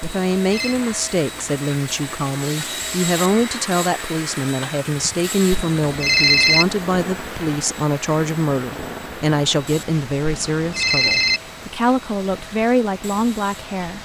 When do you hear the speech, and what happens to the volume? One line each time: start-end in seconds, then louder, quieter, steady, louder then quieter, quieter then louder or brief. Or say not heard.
0.0-13.9 steady.